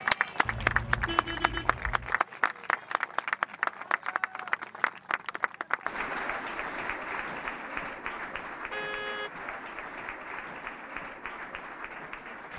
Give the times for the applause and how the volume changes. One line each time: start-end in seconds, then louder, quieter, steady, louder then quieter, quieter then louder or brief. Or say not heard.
0.0-12.5 quieter.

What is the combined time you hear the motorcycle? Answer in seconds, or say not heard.
not heard.